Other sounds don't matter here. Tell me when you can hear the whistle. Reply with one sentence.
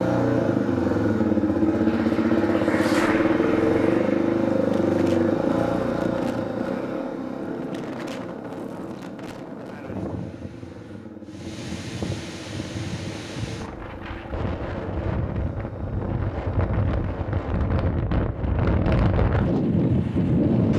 You can't hear the whistle here.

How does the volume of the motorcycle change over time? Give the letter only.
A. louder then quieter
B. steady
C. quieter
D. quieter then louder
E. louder
C.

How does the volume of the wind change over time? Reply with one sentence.
The volume of the wind goes up.